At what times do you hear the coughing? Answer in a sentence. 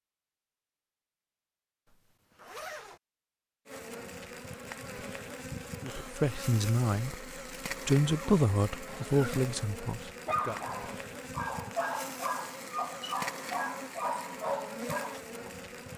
You can't hear the coughing here.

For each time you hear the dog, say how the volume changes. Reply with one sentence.
You can hear the dog from 10.2 to 15.5 s, at a steady volume.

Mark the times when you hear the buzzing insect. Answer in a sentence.
You can hear the buzzing insect from 3.6 to 15.9 s.